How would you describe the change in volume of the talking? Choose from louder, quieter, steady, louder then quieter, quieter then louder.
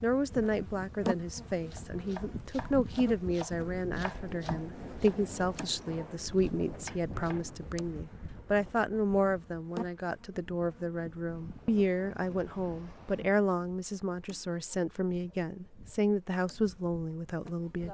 steady.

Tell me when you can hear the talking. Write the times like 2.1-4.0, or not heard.
0.0-17.8.